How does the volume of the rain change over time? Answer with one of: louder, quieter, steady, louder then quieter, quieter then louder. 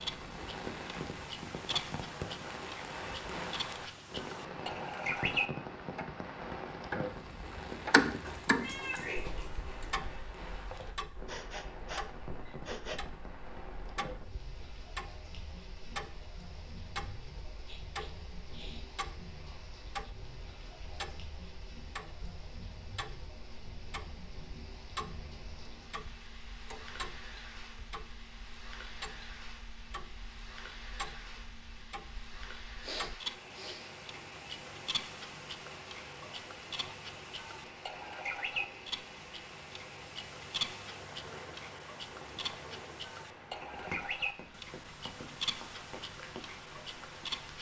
quieter.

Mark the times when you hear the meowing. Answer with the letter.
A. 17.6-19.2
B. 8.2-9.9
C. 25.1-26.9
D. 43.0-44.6
B.